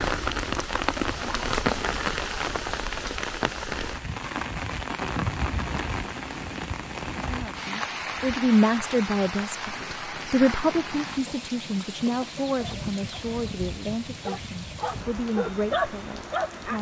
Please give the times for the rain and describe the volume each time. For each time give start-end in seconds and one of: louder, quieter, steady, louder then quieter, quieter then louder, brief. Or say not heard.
0.0-16.7 quieter.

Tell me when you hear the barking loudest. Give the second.
16 s.